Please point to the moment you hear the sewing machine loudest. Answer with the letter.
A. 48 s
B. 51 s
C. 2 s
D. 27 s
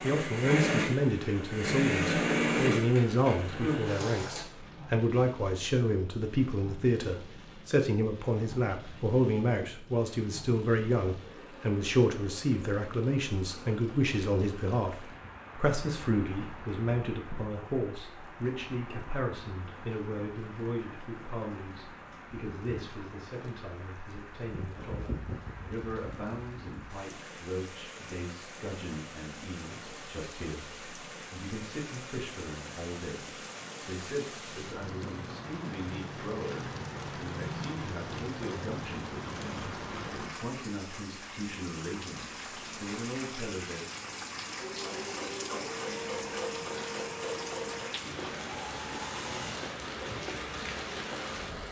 C.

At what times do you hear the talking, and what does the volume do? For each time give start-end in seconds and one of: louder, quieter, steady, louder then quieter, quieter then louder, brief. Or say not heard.
0.0-43.9 quieter.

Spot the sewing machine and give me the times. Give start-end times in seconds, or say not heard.
0.0-4.5, 44.5-51.6.